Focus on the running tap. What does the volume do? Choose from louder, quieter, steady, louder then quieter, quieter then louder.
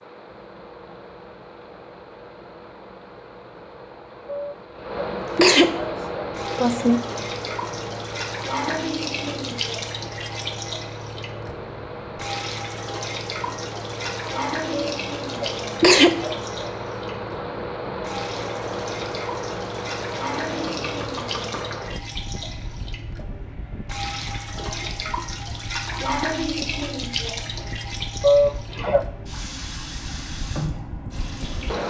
steady.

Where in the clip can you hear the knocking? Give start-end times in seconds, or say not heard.
20.4-21.9.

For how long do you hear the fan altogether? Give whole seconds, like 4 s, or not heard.
32 s.